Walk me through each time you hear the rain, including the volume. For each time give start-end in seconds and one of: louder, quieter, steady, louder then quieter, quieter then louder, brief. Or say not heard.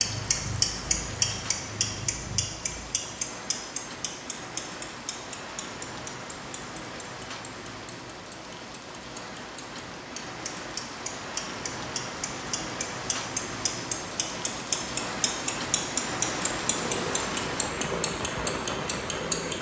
0.0-19.5 louder.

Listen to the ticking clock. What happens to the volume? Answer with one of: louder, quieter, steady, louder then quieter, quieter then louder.
quieter then louder.